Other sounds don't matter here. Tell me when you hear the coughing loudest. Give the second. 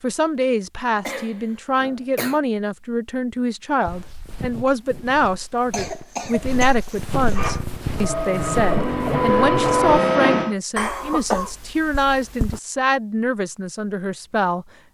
11 s.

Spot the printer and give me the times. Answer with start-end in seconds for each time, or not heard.
7.3-10.6.